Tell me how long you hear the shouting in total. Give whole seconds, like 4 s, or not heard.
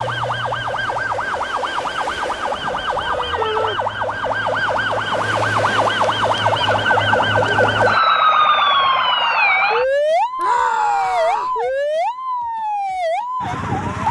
2 s.